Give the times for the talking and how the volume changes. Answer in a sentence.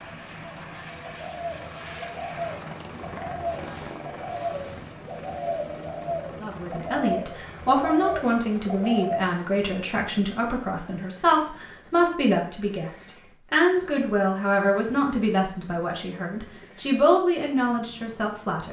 The talking can be heard from 6.4 to 18.6 s, at a steady volume.